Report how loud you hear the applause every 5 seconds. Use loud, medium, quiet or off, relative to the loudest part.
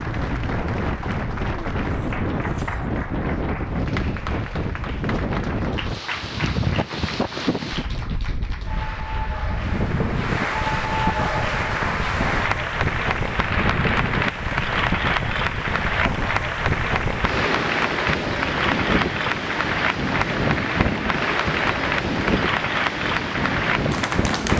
medium, medium, loud, loud, loud.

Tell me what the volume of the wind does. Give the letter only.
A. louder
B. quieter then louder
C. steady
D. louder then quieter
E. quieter
C.